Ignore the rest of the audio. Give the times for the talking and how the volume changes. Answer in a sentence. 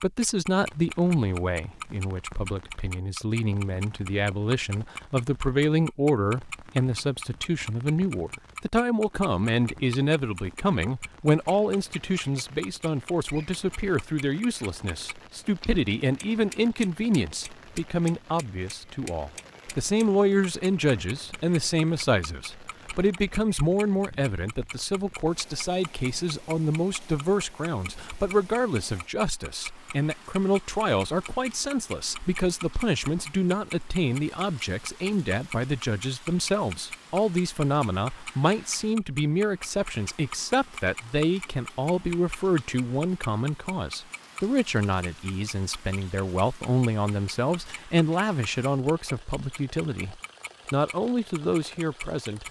The talking can be heard from 0.0 to 52.4 s, at a steady volume.